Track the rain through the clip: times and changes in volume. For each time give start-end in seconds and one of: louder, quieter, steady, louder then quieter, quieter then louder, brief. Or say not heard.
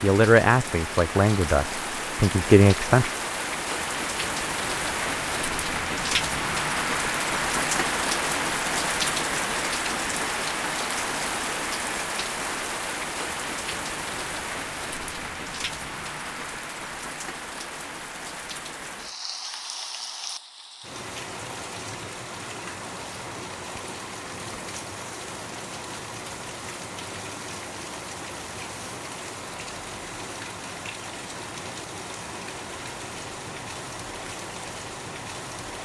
0.0-35.7 quieter.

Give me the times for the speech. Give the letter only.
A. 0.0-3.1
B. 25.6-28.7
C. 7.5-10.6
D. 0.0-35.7
A.